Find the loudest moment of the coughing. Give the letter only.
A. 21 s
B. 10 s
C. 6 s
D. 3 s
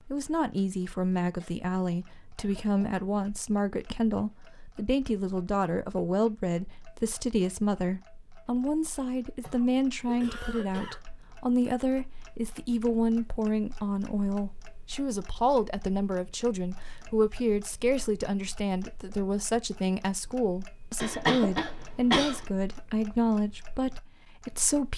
A.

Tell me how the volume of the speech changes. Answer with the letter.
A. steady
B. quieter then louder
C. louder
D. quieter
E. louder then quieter
A.